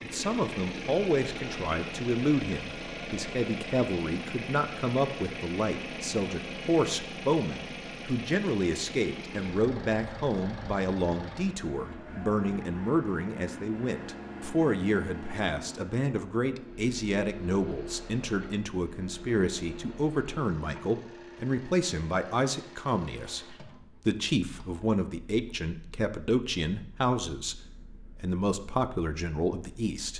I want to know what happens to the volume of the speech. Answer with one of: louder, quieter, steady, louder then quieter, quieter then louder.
steady.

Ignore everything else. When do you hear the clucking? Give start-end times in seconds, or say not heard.
not heard.